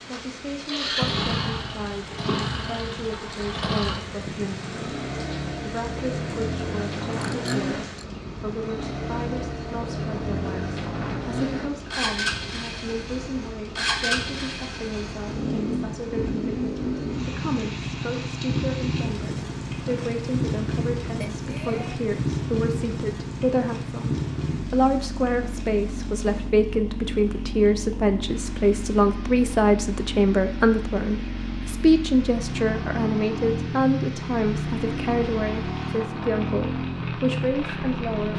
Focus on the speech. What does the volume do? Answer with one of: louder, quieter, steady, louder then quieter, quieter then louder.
louder.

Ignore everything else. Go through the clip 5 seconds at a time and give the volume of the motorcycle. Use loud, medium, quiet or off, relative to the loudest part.
loud, loud, loud, loud, loud, medium, loud, loud.